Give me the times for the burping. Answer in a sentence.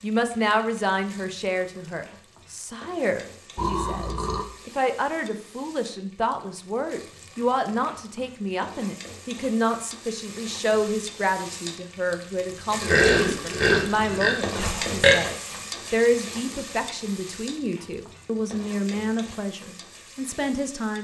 You can hear the burping from 3.5 to 4.5 s and from 12.8 to 15.2 s.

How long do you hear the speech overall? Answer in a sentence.
The speech can be heard for 21 seconds in total.